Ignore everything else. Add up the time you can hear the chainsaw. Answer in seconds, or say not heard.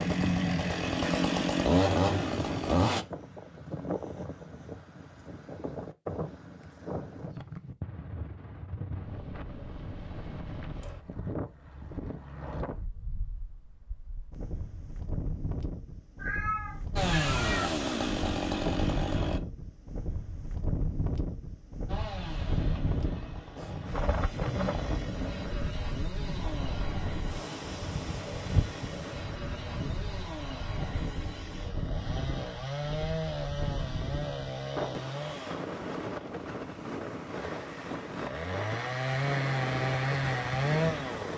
25 s.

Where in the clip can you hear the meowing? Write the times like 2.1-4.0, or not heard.
16.2-17.7.